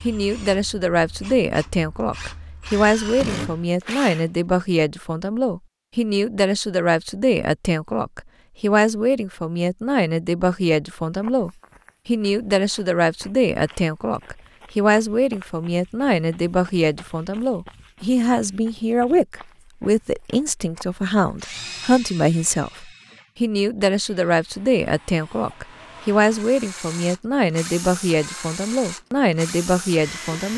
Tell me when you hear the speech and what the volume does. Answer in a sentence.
The speech can be heard from 0.0 to 30.5 s, at a steady volume.